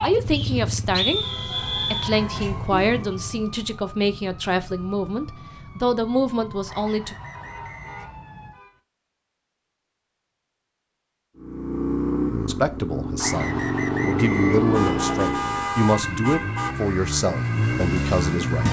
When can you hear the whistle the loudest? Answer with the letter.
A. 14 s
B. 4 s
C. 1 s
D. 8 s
C.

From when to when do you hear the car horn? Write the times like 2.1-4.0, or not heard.
1.1-2.1, 7.3-8.8, 14.7-16.8.